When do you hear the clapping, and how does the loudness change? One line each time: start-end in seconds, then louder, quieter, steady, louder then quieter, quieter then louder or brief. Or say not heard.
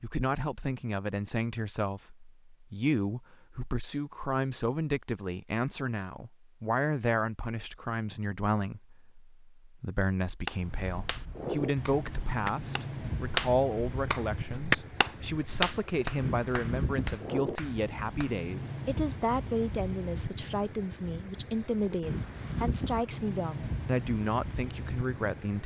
10.4-18.4 louder then quieter.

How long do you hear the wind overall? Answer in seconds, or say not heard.
15 s.